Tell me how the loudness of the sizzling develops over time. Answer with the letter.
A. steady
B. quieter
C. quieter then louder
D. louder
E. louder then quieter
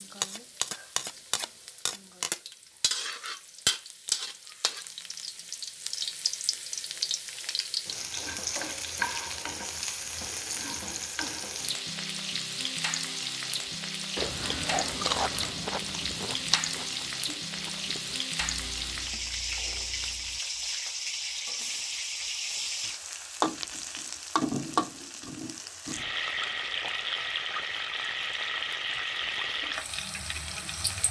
A.